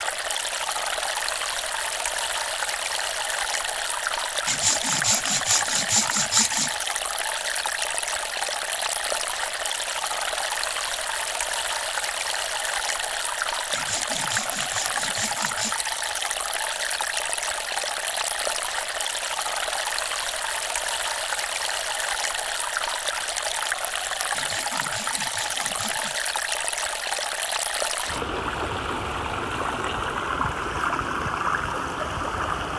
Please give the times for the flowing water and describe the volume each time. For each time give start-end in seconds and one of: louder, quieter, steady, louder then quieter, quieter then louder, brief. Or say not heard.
0.0-32.7 steady.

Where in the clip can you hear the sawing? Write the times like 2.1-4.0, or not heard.
4.5-6.8, 13.7-15.8, 24.3-26.2.